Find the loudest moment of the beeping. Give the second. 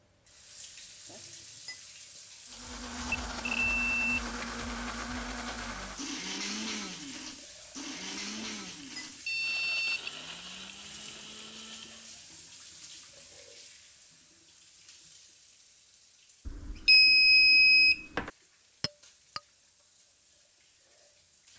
17 s.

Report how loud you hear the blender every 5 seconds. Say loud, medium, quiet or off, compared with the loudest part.
loud, loud, medium, off, off.